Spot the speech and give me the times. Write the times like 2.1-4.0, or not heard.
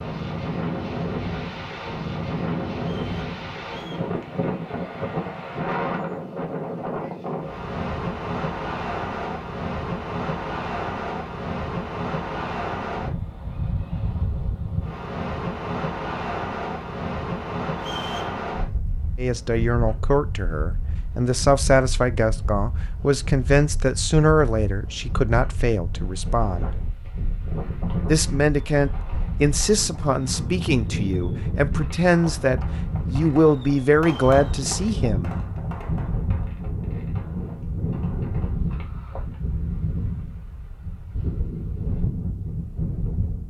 19.1-26.7, 28.1-35.3.